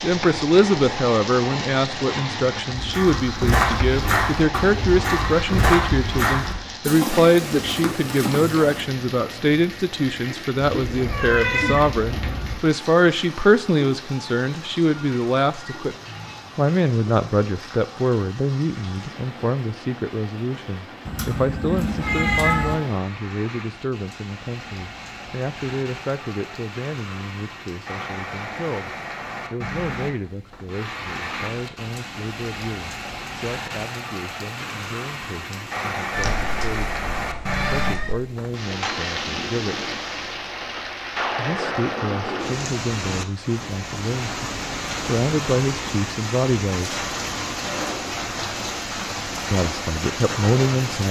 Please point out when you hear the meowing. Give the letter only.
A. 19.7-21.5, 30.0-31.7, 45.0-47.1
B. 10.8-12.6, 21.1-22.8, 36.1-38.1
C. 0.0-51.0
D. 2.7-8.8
B.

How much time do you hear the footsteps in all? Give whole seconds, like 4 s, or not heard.
6 s.